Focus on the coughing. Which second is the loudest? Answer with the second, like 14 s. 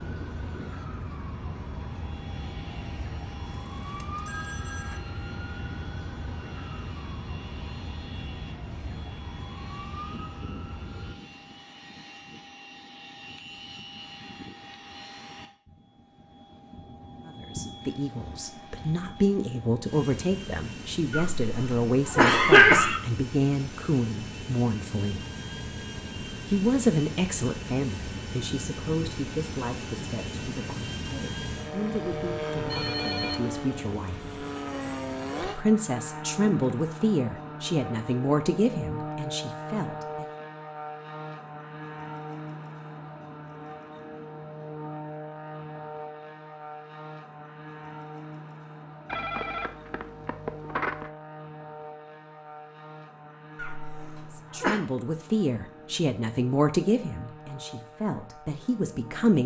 23 s.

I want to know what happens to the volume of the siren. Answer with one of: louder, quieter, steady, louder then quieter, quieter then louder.
steady.